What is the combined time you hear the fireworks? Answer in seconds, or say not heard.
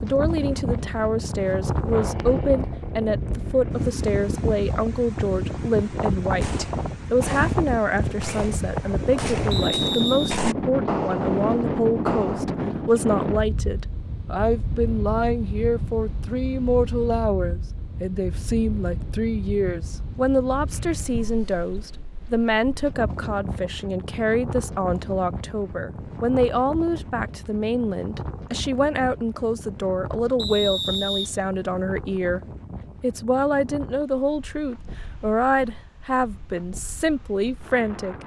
6 s.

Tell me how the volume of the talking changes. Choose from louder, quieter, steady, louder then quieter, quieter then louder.
steady.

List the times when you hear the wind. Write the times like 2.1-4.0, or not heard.
0.0-38.2.